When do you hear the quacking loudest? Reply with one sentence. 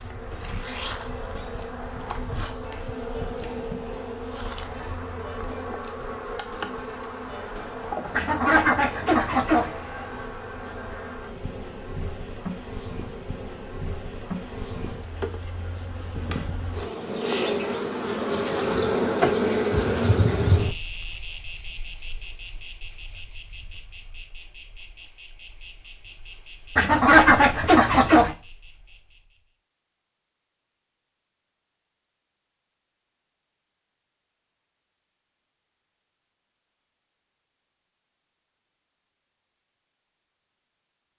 The loudest moment of the quacking is at 27 seconds.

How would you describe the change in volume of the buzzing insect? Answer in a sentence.
The loudness of the buzzing insect goes up, then down.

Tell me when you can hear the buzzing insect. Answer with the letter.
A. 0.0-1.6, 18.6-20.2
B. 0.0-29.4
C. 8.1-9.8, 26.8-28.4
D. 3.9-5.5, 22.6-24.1
B.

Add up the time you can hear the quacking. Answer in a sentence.
You can hear the quacking for 3 seconds altogether.